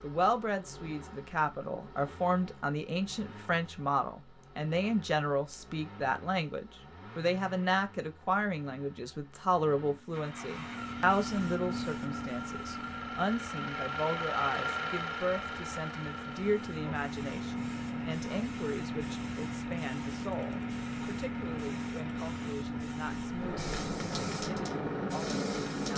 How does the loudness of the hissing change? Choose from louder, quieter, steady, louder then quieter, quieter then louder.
quieter then louder.